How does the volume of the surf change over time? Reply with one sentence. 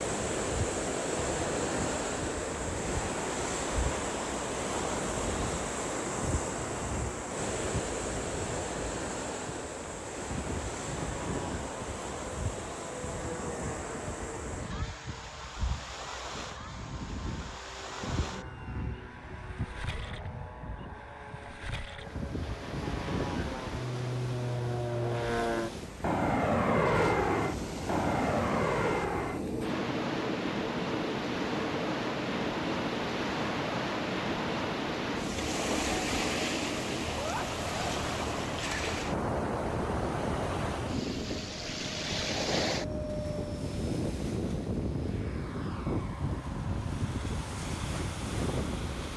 The loudness of the surf goes down, then up.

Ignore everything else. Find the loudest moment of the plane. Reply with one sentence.
The volume of the plane peaks at 27 seconds.